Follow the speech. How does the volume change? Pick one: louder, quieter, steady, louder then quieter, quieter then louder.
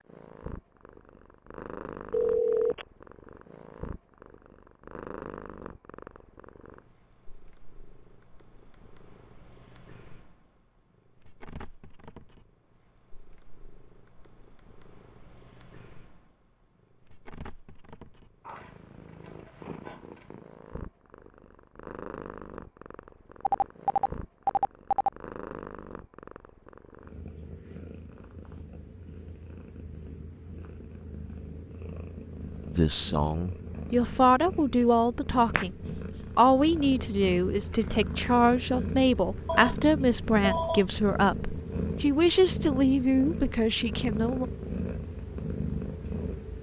steady.